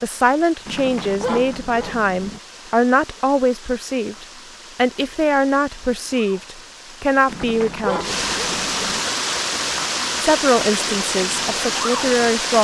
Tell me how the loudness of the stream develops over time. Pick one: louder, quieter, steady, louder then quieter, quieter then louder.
louder.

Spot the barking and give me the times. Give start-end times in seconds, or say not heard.
0.7-2.4, 7.2-9.1.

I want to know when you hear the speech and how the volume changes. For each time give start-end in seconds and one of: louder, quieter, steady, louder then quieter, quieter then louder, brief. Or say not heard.
0.0-8.2 steady
10.2-12.6 brief.